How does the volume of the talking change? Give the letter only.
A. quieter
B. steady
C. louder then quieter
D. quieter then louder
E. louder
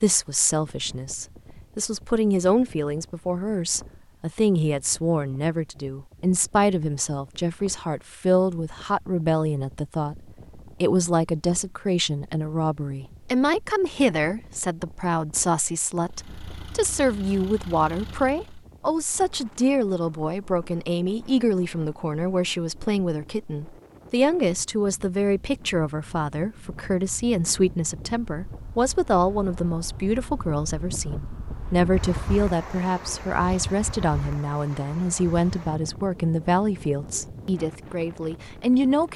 B.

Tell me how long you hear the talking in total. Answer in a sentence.
The talking can be heard for 39 seconds in total.